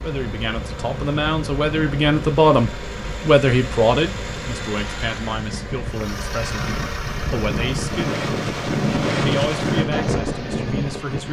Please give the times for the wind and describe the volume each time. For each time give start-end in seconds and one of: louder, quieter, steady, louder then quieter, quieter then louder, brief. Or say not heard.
0.0-11.2 louder.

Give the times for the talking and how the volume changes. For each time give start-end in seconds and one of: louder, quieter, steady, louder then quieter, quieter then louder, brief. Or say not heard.
0.0-8.2 louder then quieter
9.2-11.2 brief.